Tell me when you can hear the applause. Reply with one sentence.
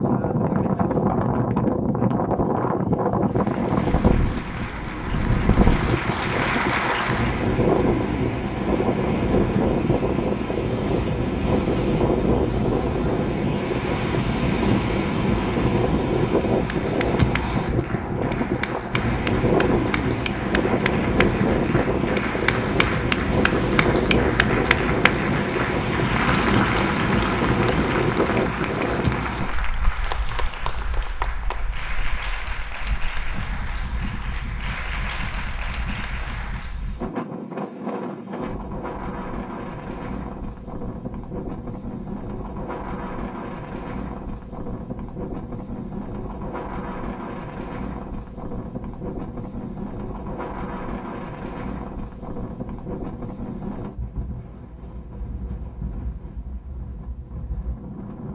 The applause can be heard from 3.2 to 7.5 s and from 16.6 to 37.0 s.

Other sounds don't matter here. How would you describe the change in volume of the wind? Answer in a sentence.
The loudness of the wind goes down.